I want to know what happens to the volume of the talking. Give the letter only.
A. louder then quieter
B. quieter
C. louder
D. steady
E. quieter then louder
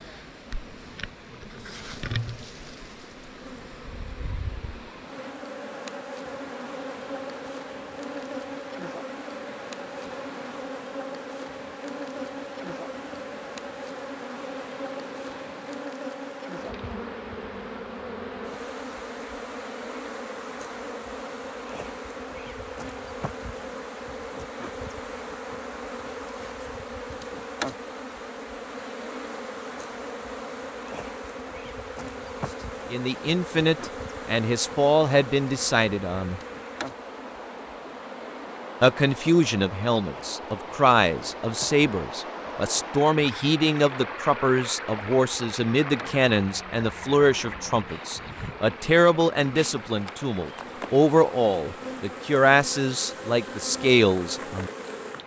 D.